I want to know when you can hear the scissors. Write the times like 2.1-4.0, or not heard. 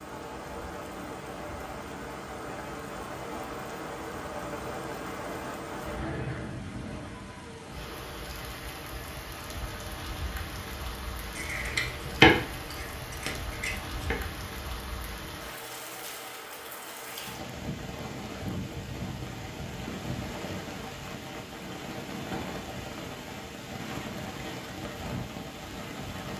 11.3-14.2.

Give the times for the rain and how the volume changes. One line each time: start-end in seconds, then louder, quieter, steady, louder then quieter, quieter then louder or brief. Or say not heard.
0.0-26.3 steady.